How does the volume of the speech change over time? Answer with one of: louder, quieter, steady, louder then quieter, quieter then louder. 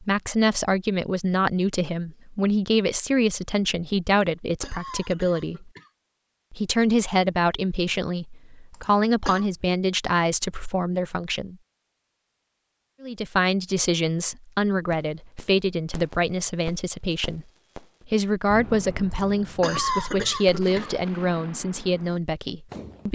steady.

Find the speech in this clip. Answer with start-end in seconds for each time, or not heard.
0.0-5.7, 6.5-11.6, 13.0-17.4, 18.1-23.1.